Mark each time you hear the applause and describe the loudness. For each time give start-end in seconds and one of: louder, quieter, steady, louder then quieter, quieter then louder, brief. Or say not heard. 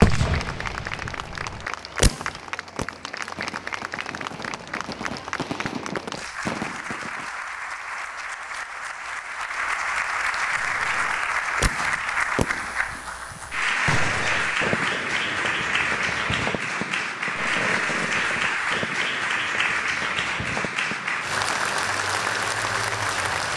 0.0-23.5 louder.